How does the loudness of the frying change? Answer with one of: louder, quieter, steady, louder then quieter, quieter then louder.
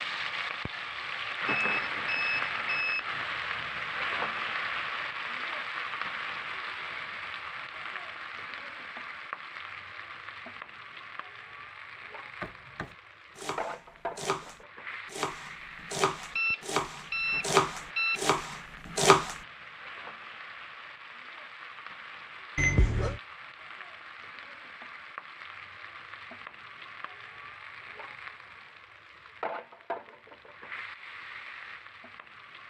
quieter.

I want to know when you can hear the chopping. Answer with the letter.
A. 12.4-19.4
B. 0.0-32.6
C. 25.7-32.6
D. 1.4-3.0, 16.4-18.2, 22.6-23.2
A.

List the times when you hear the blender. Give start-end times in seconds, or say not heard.
not heard.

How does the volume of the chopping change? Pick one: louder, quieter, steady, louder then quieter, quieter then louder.
louder then quieter.